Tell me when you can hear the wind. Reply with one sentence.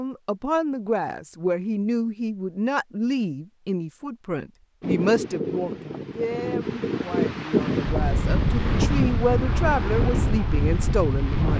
You can hear the wind from 4.8 to 11.5 s.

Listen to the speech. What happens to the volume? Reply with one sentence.
The loudness of the speech goes down, then up.